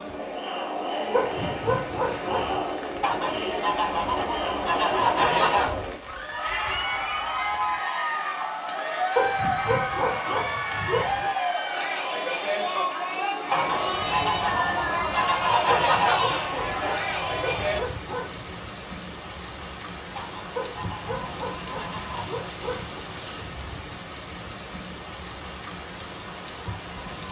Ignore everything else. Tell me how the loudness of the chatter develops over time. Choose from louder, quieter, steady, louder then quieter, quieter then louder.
steady.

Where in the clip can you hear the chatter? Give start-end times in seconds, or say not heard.
0.0-17.8.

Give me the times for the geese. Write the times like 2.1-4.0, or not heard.
3.0-5.8, 13.5-16.4, 20.1-22.3.